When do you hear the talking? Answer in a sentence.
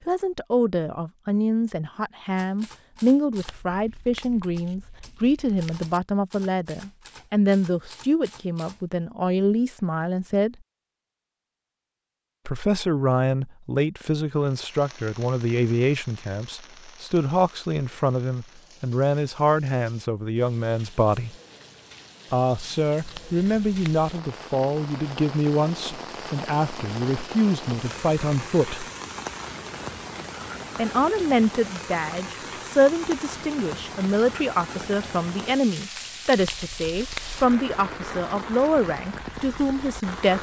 The talking can be heard from 0.1 to 10.6 s, from 12.4 to 21.4 s, from 22.3 to 28.9 s and from 30.8 to 40.3 s.